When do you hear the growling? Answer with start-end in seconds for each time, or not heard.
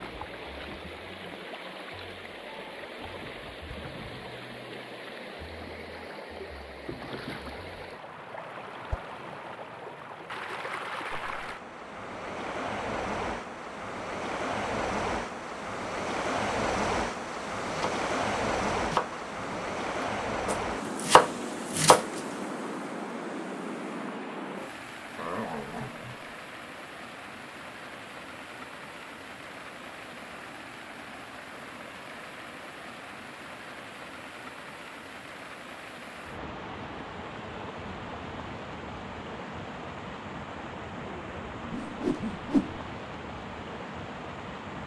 25.1-26.3.